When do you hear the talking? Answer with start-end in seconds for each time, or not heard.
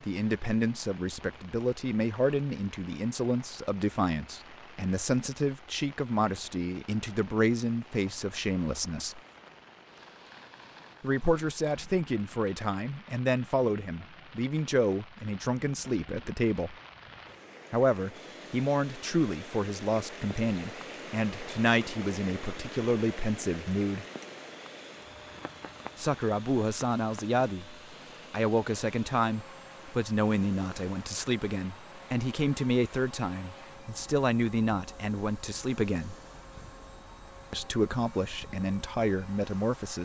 0.0-9.2, 11.0-16.8, 17.7-24.1, 25.9-36.1, 37.5-39.9.